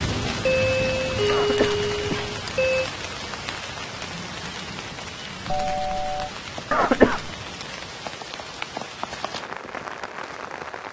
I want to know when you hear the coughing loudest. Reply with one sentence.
The volume of the coughing peaks at 7 seconds.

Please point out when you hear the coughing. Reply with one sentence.
You can hear the coughing from 1.2 to 2.3 s and from 6.7 to 7.3 s.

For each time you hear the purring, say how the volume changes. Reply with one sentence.
You can't hear the purring here.